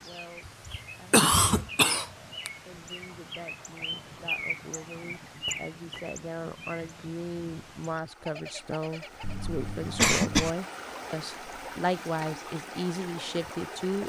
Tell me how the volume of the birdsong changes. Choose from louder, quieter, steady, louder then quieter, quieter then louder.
louder then quieter.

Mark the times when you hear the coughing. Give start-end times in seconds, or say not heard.
0.5-2.5, 9.2-10.5.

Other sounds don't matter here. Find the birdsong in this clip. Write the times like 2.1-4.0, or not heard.
0.0-9.4.